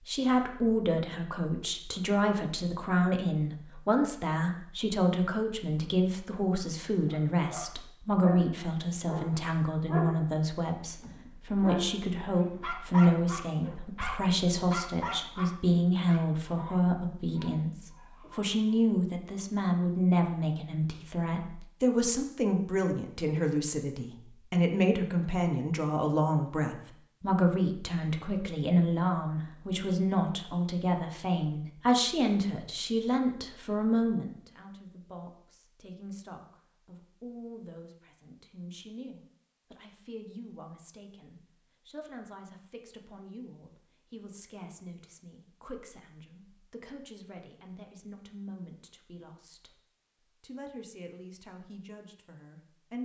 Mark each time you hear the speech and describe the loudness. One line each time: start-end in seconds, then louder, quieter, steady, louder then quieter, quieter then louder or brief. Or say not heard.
0.1-53.0 quieter.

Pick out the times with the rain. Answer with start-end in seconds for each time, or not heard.
not heard.